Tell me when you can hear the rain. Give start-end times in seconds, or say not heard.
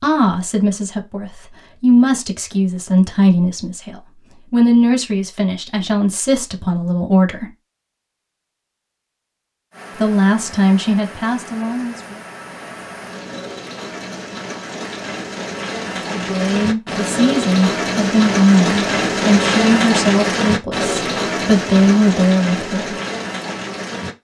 9.7-24.1.